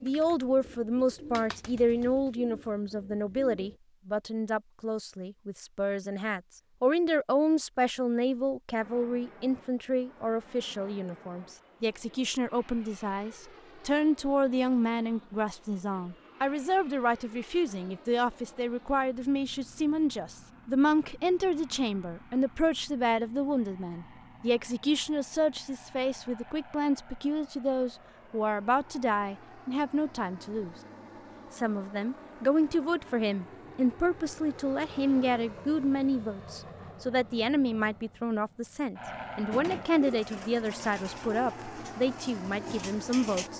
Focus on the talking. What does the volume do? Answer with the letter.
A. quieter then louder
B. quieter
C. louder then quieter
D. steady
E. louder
D.